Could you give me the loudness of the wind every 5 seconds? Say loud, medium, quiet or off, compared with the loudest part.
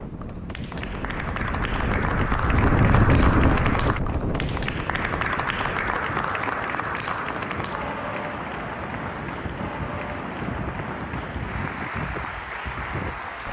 loud, medium, medium.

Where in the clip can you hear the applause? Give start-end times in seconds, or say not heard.
0.0-13.4.